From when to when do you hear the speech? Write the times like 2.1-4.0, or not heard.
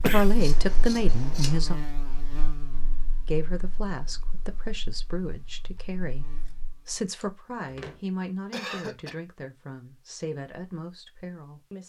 0.0-1.8, 3.2-11.8.